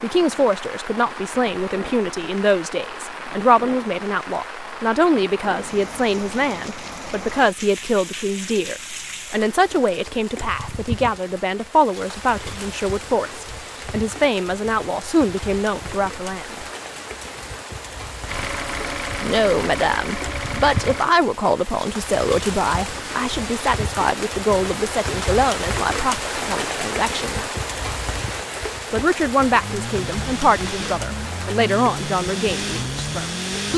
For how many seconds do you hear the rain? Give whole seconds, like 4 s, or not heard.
34 s.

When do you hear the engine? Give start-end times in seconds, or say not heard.
18.2-21.1, 29.6-33.7.